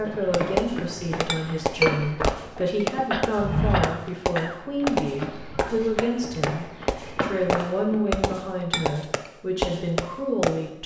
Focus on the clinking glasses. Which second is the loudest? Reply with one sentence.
The volume of the clinking glasses peaks at 2 seconds.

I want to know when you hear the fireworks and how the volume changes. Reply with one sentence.
You can hear the fireworks from 0.3 to 10.6 s, at a steady volume.